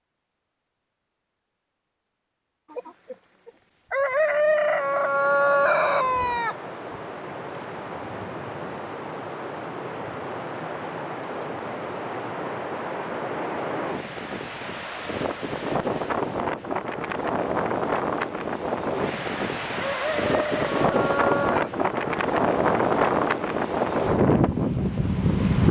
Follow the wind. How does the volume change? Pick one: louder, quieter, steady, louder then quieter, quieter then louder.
louder.